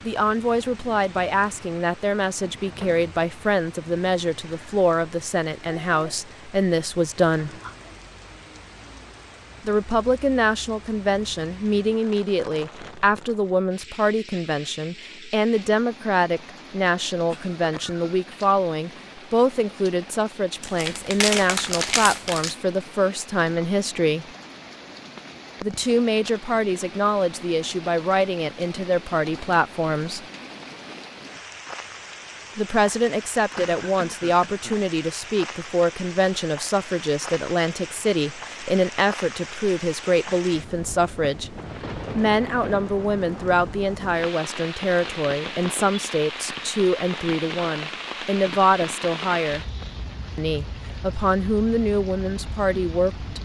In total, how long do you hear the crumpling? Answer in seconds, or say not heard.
2 s.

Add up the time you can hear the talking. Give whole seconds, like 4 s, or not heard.
46 s.